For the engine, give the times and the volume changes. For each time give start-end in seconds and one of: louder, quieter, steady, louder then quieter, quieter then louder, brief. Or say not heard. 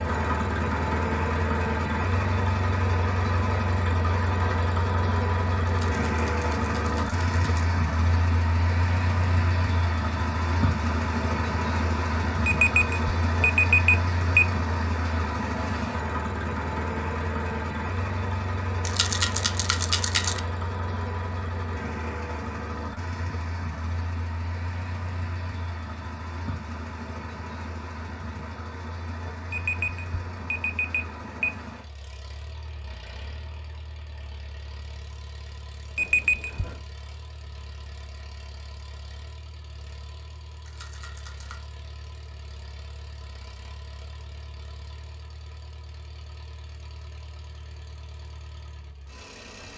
0.0-49.7 quieter.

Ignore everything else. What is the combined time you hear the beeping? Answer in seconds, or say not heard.
5 s.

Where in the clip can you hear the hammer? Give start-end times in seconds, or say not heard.
not heard.